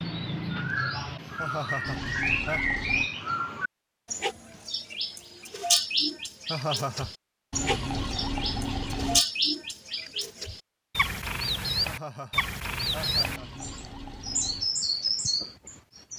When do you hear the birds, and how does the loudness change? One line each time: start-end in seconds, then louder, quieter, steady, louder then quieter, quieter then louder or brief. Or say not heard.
0.0-16.1 steady.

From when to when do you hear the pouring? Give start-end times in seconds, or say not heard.
1.9-3.1, 7.5-9.2, 13.2-14.7.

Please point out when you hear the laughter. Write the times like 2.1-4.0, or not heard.
1.4-2.8, 6.5-7.1, 11.8-13.7.